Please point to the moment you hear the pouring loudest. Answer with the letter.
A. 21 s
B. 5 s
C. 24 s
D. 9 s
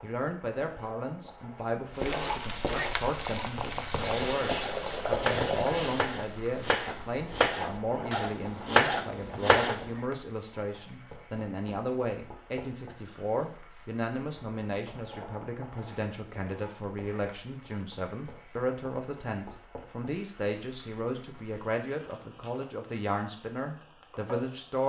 B.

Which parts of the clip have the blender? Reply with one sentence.
The blender can't be heard in this clip.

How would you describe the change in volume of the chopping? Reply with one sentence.
The volume of the chopping goes up.